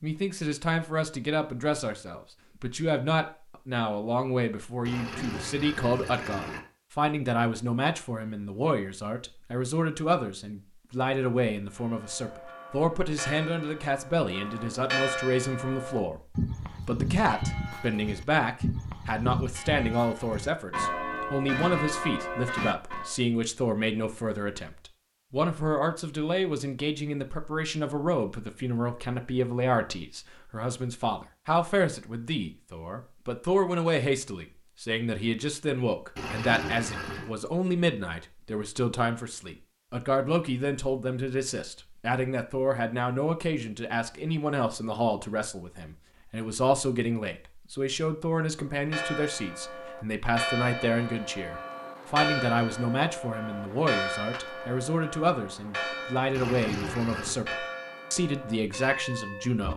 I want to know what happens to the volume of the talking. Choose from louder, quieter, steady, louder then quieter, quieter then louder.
steady.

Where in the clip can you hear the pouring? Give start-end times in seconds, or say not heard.
4.8-6.6, 36.1-37.3, 56.3-57.4.